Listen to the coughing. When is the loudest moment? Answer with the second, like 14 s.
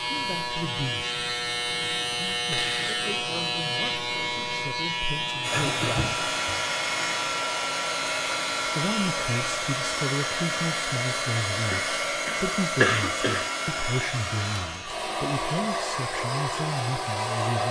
13 s.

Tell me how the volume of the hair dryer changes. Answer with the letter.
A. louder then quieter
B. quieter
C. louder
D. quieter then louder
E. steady
E.